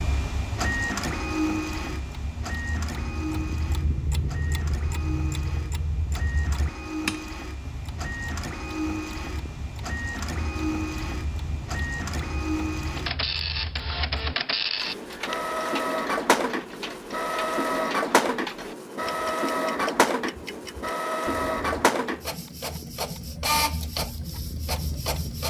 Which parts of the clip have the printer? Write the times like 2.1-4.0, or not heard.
0.0-25.4.